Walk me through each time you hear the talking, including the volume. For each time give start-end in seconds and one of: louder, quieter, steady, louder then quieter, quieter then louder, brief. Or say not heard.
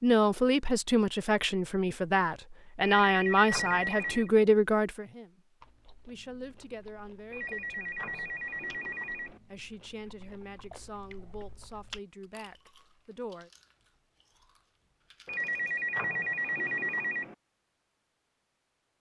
0.0-8.4 quieter
9.5-13.5 quieter.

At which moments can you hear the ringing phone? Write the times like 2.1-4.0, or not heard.
2.8-4.3, 7.3-9.4, 15.2-17.4.